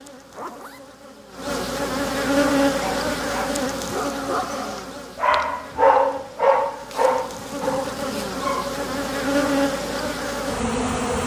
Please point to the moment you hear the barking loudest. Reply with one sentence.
The loudest moment of the barking is at 6 seconds.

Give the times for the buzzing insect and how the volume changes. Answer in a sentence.
The buzzing insect can be heard from 0.0 to 11.2 s, getting quieter then louder.